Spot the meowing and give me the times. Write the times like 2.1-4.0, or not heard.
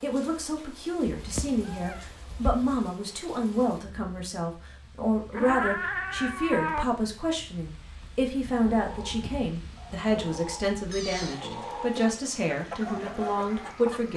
1.1-2.9, 5.3-6.8, 10.9-12.2.